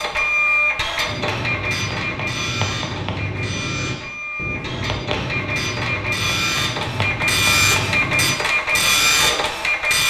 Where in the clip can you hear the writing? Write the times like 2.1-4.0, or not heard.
1.1-9.4.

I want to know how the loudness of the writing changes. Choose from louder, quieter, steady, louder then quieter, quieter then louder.
steady.